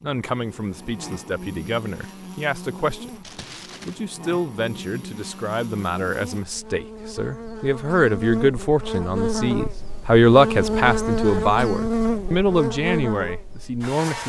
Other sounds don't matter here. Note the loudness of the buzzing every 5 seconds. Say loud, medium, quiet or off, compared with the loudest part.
quiet, medium, loud.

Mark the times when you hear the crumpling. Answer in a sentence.
The crumpling can be heard from 3.2 to 4.0 s.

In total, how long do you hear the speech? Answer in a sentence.
You can hear the speech for 14 seconds altogether.